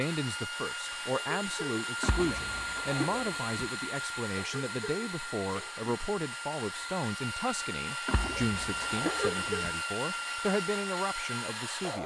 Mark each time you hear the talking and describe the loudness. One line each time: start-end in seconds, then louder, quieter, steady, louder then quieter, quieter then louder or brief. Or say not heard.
0.0-12.0 steady.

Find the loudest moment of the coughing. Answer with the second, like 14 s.
9 s.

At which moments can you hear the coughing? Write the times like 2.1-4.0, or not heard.
0.8-1.8, 4.1-5.9, 8.8-9.7.